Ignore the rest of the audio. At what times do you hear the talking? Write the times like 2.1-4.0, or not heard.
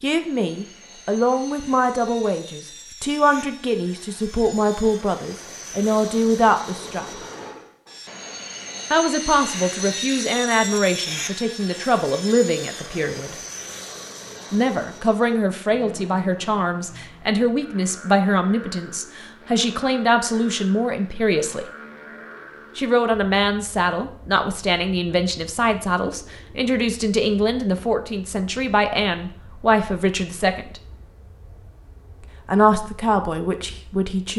0.0-7.0, 8.9-13.3, 14.5-21.6, 22.8-30.8, 32.5-34.3.